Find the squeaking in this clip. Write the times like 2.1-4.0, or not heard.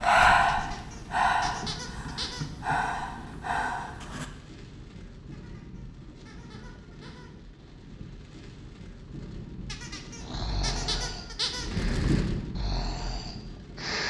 0.5-2.5, 5.3-7.3, 9.7-11.7.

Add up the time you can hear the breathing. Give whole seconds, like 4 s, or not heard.
8 s.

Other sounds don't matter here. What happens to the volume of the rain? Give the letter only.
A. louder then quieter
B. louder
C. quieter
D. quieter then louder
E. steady
B.